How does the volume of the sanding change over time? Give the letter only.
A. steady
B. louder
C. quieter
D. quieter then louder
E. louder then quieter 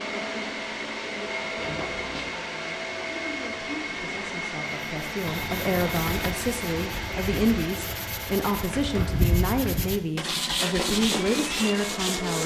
B.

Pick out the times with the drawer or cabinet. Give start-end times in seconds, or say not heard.
1.6-2.4, 5.2-6.3, 8.8-9.2.